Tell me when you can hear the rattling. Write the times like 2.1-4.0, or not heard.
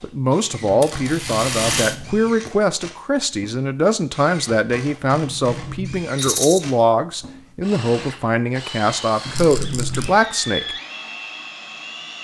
0.8-1.9, 6.2-6.6, 9.3-10.1.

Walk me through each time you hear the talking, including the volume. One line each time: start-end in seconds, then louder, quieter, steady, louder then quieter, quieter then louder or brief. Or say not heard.
0.0-10.8 steady.